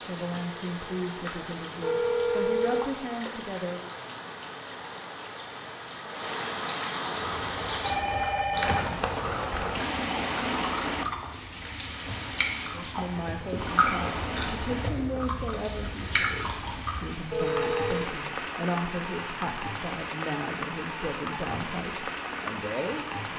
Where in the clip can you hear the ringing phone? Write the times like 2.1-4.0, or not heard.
1.8-3.4, 7.8-8.9, 17.3-18.1.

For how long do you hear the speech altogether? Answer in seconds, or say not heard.
14 s.